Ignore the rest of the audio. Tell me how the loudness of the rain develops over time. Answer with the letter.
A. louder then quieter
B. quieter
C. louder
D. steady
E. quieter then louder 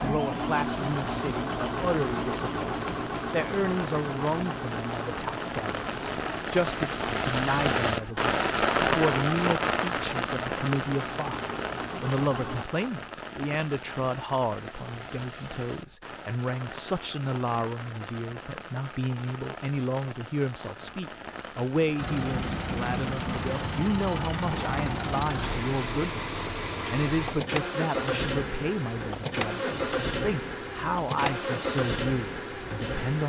A.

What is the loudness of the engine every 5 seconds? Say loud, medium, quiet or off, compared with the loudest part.
loud, medium, medium, off, loud, loud, loud.